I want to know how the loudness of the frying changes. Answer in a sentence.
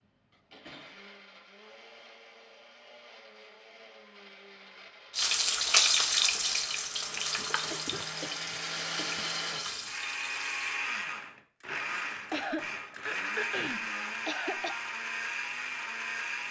The loudness of the frying goes down.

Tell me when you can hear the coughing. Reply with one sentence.
You can hear the coughing from 0.3 to 1.1 s, from 7.7 to 9.3 s and from 12.3 to 14.8 s.